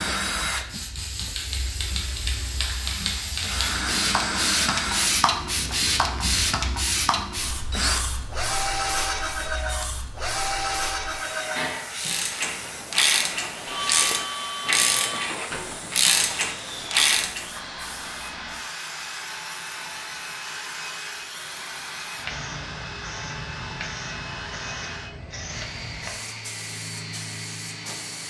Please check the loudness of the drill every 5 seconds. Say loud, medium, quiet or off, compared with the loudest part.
loud, loud, loud, medium, medium, medium.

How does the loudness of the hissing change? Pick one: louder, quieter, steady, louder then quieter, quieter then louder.
quieter.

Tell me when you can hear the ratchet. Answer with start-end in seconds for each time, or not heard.
11.9-17.4.